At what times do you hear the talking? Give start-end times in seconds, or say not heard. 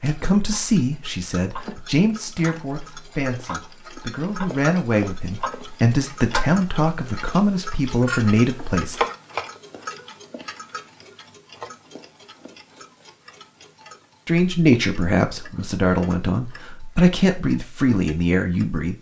0.0-9.1, 14.2-18.9.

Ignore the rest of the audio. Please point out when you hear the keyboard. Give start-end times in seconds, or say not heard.
not heard.